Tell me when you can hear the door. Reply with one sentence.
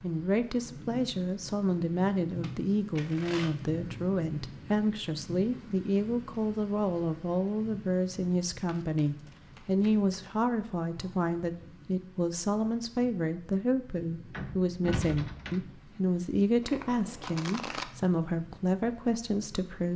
You can hear the door from 14.3 to 15.7 s.